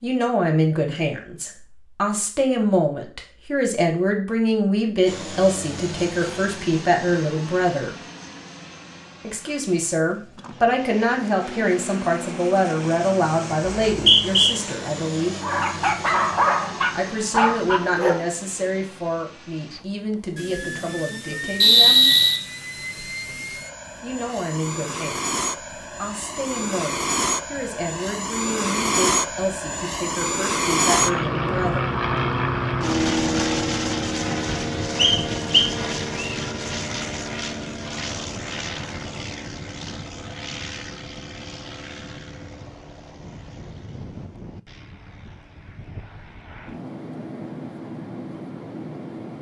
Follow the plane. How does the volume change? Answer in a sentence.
The volume of the plane goes up, then down.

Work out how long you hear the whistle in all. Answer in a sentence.
You can hear the whistle for 3 seconds altogether.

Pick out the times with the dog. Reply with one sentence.
The dog can be heard from 15.4 to 18.2 s.